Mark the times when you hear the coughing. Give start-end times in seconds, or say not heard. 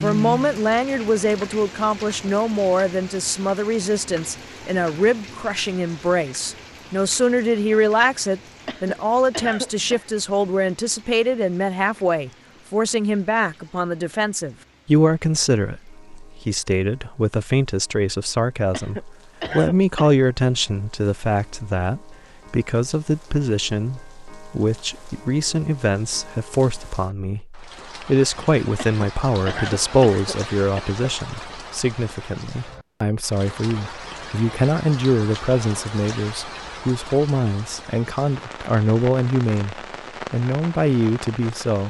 8.7-10.1, 18.7-20.1, 28.8-30.9.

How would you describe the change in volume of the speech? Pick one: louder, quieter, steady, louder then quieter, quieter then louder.
steady.